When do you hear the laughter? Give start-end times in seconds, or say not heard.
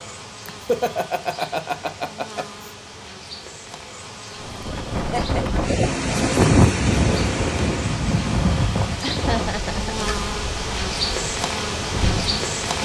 0.5-2.7, 5.0-5.5, 9.0-10.2.